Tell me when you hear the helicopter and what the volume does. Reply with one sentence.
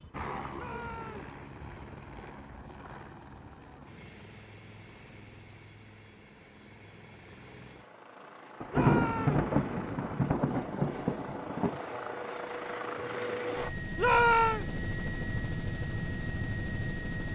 You can hear the helicopter from 0.0 to 17.3 s, getting quieter then louder.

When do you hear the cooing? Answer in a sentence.
You can't hear the cooing here.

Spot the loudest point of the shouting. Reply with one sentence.
The volume of the shouting peaks at 14 seconds.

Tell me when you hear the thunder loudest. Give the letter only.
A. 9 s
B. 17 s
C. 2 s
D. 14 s
A.